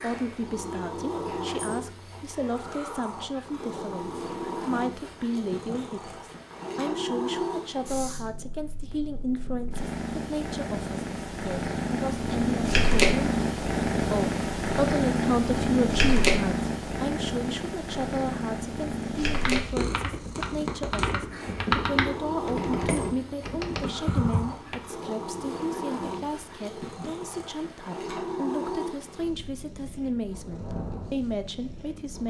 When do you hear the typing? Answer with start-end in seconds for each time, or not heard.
19.2-24.8.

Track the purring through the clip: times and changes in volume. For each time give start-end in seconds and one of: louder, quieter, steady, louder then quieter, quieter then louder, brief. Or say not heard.
0.0-32.2 louder then quieter.